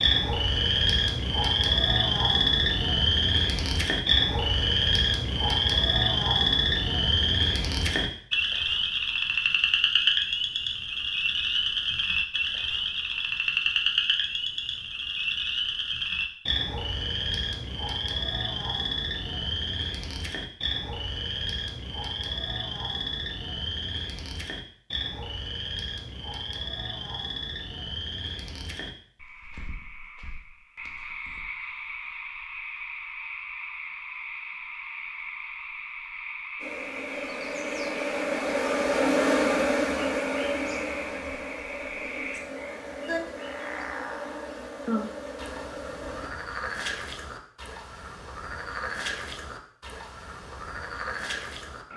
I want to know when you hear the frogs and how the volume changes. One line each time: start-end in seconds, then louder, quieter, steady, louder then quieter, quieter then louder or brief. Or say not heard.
0.0-51.9 quieter.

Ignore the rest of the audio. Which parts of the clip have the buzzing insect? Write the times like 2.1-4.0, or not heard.
36.6-46.3.